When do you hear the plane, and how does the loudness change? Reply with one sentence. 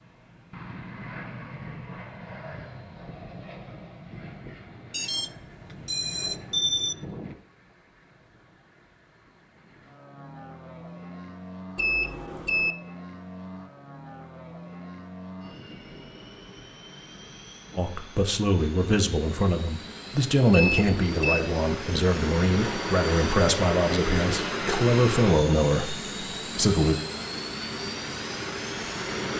You can hear the plane from 0.0 to 29.3 s, getting louder.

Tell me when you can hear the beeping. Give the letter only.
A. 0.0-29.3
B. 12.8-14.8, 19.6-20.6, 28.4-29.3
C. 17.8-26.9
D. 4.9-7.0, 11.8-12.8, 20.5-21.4
D.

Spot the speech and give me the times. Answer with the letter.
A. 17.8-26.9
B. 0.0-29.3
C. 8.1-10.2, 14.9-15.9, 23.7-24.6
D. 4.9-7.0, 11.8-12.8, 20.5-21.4
A.